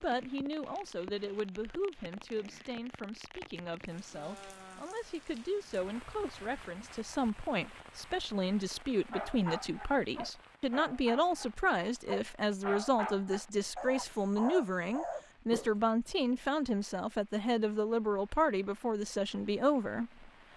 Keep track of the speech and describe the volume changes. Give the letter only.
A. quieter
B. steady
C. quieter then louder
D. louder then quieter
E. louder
E.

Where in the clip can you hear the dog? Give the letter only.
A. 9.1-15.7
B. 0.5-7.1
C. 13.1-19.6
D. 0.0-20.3
A.